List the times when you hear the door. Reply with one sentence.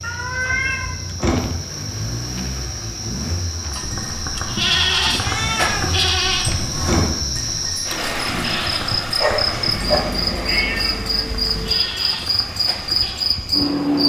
The door can be heard from 1.2 to 1.6 s, from 6.8 to 7.2 s and from 9.4 to 11.0 s.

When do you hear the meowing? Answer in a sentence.
You can hear the meowing from 0.0 to 1.1 s, from 5.2 to 6.0 s and from 9.7 to 11.8 s.